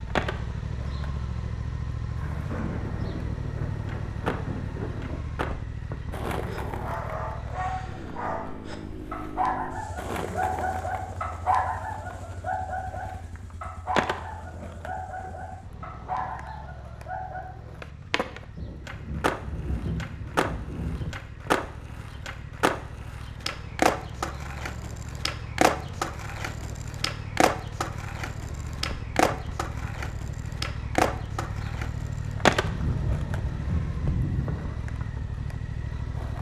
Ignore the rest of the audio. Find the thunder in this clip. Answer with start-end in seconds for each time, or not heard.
2.1-5.2, 18.6-21.2, 32.6-34.6.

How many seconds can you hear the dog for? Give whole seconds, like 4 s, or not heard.
11 s.